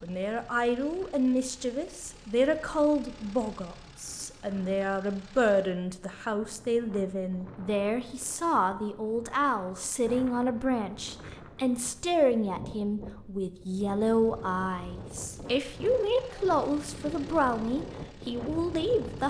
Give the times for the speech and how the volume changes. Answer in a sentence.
The speech can be heard from 0.0 to 19.2 s, at a steady volume.